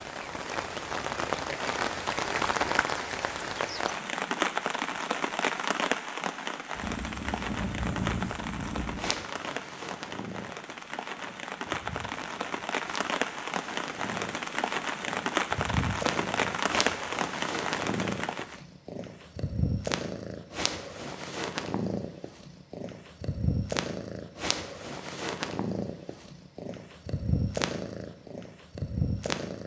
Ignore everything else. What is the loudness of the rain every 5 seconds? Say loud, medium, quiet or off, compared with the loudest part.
loud, loud, loud, loud, off, off.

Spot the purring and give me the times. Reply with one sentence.
You can hear the purring from 6.8 to 29.6 s.